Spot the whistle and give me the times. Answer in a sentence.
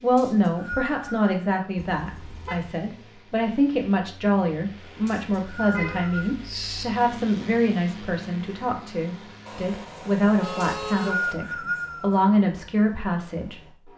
The whistle can be heard from 0.1 to 1.3 s, from 5.0 to 6.3 s and from 10.6 to 12.2 s.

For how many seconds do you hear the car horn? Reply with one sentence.
You can hear the car horn for 4 seconds altogether.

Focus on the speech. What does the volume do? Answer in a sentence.
The volume of the speech stays about the same.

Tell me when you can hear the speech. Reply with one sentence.
The speech can be heard from 0.0 to 13.6 s.